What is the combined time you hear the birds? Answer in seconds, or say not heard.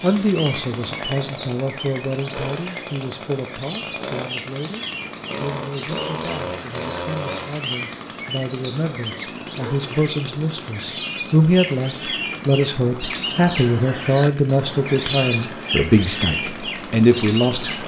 18 s.